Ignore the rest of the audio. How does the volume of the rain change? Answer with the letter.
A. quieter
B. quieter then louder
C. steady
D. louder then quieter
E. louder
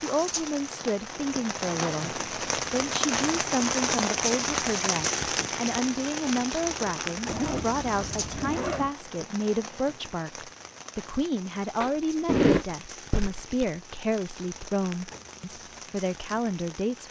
A.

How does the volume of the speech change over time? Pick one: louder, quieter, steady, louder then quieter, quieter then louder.
steady.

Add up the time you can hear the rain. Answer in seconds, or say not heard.
17 s.